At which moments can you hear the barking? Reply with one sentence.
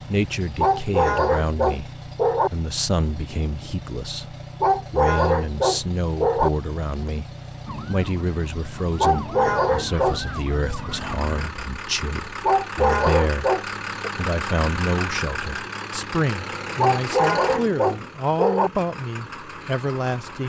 You can hear the barking from 0.6 to 2.5 s, from 4.6 to 6.5 s, from 8.9 to 10.2 s, from 12.4 to 14.1 s and from 16.8 to 18.7 s.